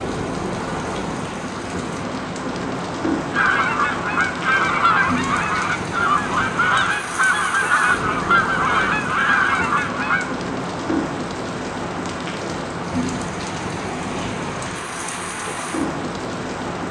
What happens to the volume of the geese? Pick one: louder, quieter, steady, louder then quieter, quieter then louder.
steady.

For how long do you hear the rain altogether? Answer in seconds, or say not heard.
17 s.